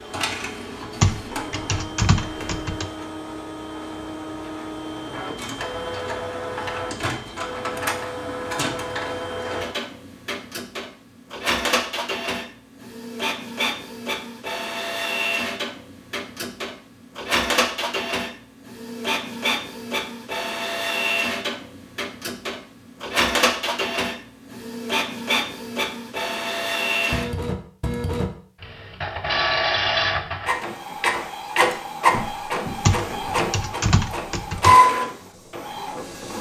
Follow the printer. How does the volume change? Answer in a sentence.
The volume of the printer goes up.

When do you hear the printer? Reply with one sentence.
You can hear the printer from 0.0 to 36.3 s.